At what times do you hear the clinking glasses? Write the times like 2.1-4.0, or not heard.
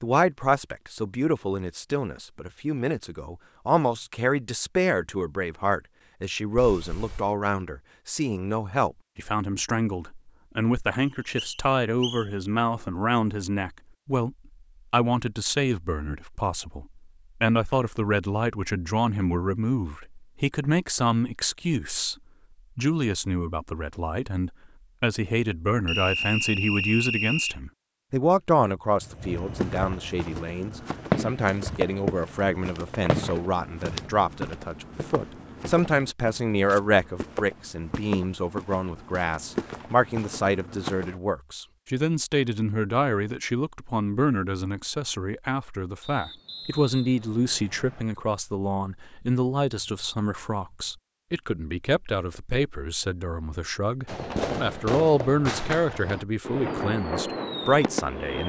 not heard.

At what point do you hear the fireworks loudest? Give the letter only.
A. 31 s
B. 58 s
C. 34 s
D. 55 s
A.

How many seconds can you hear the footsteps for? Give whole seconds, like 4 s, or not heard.
12 s.